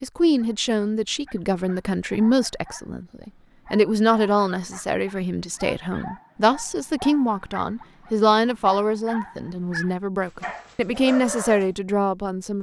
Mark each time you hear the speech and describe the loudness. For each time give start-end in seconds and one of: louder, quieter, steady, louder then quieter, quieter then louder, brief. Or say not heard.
0.0-12.5 steady.